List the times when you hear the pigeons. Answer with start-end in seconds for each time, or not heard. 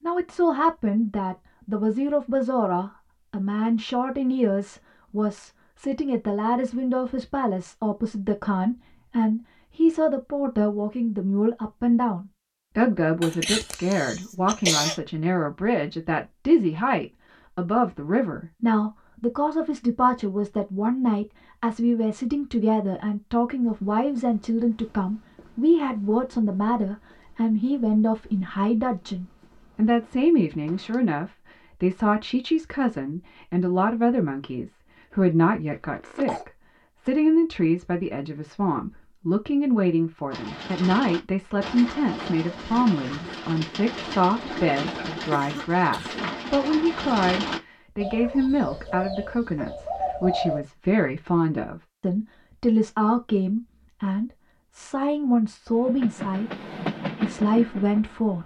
40.3-50.6.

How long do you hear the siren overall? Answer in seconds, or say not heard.
not heard.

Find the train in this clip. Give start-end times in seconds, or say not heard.
55.7-58.4.